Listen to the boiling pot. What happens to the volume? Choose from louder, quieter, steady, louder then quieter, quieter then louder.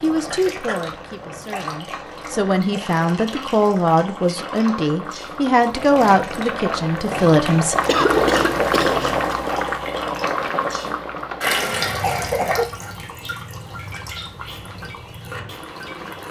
louder then quieter.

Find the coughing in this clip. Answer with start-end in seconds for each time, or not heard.
0.2-0.9, 7.8-9.3, 11.4-12.7.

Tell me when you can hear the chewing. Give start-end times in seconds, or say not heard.
not heard.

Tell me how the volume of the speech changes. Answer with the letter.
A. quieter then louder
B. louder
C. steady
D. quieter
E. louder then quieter
B.